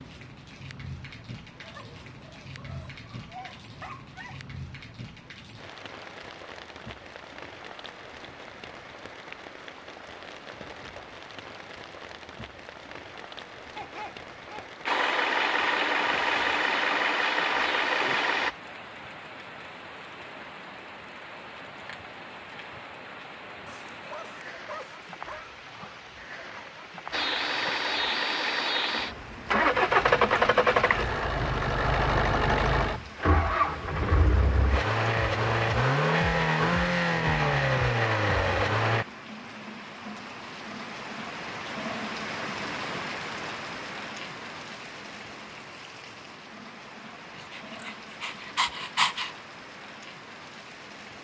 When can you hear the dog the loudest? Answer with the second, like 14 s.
49 s.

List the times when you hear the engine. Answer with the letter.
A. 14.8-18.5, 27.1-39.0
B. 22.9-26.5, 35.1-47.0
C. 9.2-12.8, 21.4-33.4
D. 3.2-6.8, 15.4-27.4
A.